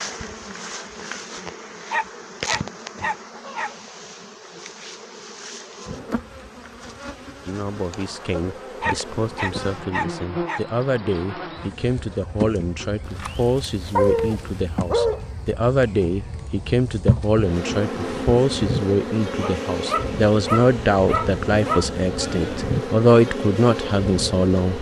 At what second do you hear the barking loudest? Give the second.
14 s.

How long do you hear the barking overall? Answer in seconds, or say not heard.
8 s.